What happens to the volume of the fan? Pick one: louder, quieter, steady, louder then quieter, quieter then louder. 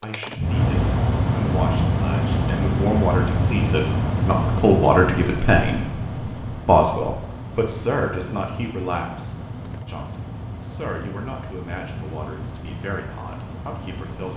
quieter.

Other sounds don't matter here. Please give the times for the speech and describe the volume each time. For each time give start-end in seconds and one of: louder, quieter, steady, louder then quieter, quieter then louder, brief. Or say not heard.
0.0-14.3 louder then quieter.